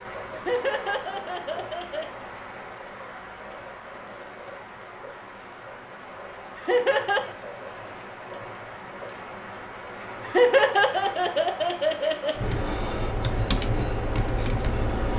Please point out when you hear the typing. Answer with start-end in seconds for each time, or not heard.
12.3-15.1.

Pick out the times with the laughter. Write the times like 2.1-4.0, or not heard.
0.3-2.1, 6.5-7.3, 10.2-12.3.